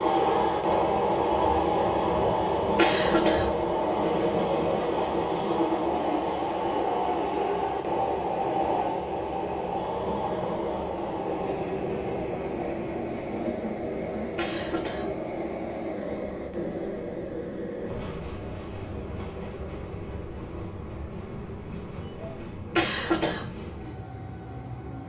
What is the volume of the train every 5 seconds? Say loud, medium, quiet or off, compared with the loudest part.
loud, loud, medium, medium, quiet.